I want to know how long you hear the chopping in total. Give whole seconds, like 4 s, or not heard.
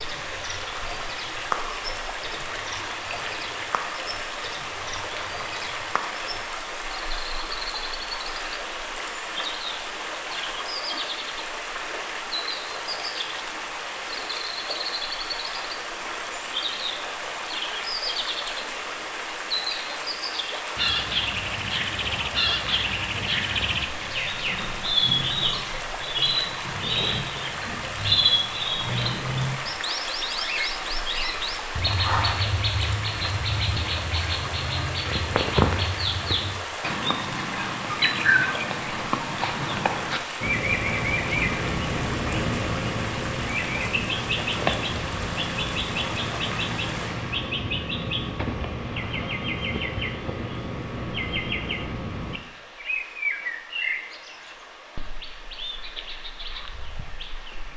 not heard.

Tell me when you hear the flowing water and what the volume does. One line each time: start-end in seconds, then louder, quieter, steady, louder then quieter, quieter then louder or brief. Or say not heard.
0.0-57.7 quieter.